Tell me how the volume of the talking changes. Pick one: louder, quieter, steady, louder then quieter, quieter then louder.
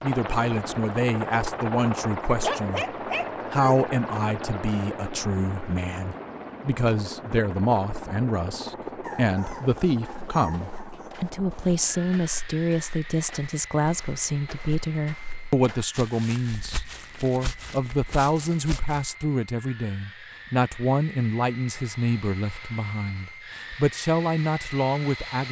steady.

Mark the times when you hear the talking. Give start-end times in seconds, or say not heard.
0.0-25.4.